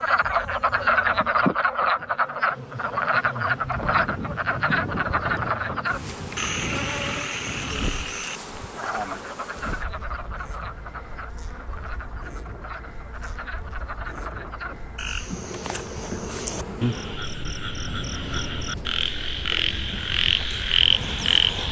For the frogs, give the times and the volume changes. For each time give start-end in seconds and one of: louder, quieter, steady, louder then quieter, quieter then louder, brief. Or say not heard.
0.0-21.6 quieter then louder.